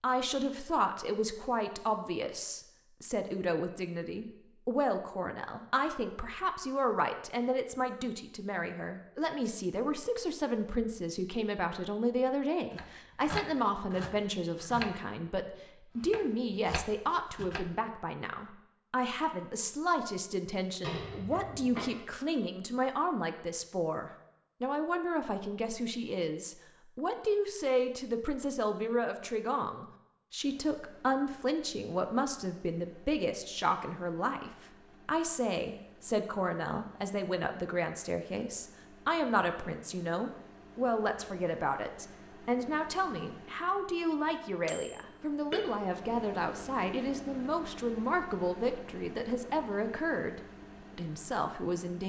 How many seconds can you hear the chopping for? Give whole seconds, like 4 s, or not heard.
5 s.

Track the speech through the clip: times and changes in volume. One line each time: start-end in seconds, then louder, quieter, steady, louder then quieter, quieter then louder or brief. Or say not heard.
0.0-52.0 steady.